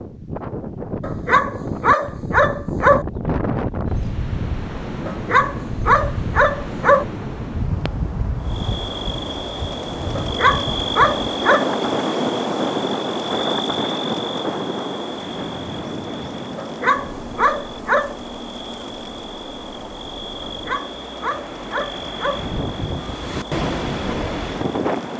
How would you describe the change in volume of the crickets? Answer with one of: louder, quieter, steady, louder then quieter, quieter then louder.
quieter.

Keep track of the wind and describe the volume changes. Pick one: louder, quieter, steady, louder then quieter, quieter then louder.
quieter then louder.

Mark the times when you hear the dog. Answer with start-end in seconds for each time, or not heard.
1.0-3.0, 5.0-7.0, 10.2-11.7, 16.6-18.1, 20.4-22.4.